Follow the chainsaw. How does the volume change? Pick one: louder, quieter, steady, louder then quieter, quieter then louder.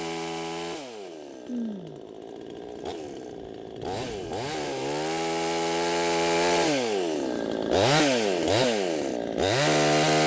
louder.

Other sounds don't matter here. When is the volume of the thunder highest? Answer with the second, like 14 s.
2 s.